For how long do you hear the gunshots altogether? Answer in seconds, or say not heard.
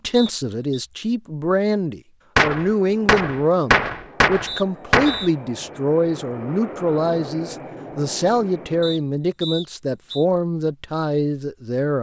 3 s.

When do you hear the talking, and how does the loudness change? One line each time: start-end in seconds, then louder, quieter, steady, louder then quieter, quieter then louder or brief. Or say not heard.
0.0-11.9 steady.